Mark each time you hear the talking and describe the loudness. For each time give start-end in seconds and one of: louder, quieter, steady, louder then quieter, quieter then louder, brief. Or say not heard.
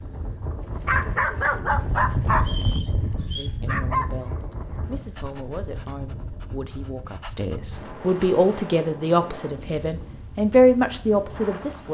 3.4-11.8 louder.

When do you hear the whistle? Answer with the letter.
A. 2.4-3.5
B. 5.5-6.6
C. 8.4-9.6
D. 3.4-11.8
A.